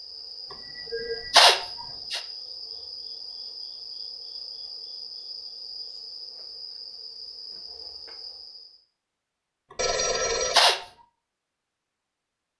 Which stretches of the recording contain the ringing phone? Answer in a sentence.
The ringing phone can be heard from 9.8 to 10.6 s.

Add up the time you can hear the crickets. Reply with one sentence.
The crickets can be heard for 9 seconds in total.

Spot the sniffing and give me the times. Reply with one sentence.
The sniffing can be heard from 0.9 to 2.2 s and from 10.1 to 10.8 s.